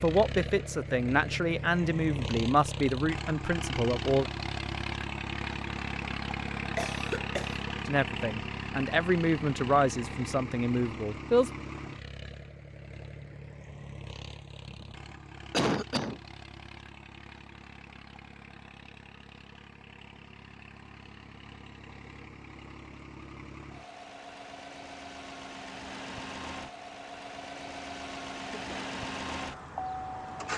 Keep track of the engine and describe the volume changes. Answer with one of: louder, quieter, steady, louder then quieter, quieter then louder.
quieter then louder.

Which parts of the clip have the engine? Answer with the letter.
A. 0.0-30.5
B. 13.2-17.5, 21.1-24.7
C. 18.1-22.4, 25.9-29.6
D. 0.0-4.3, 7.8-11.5
A.